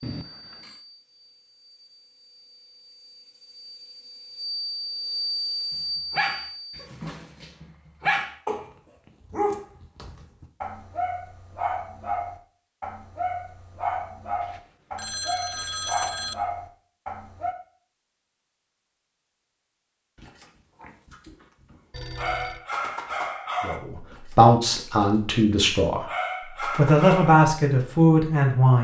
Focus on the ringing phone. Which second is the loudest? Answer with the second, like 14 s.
16 s.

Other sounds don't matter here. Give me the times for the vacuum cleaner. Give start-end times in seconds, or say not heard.
0.0-6.8.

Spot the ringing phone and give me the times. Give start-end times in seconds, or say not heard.
0.0-0.8, 14.4-16.4, 21.9-22.6.